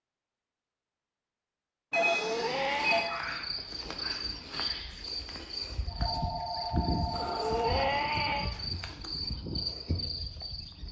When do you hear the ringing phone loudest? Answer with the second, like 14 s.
2 s.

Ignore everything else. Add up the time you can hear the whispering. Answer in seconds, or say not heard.
not heard.